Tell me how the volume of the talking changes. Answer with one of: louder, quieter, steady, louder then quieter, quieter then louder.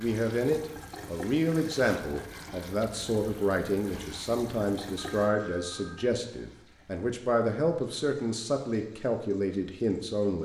steady.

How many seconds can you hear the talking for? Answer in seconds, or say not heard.
10 s.